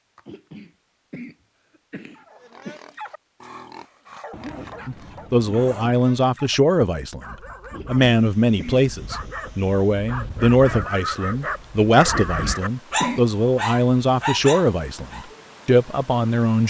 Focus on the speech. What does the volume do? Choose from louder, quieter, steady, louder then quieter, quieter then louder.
steady.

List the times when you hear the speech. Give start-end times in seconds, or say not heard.
4.8-16.6.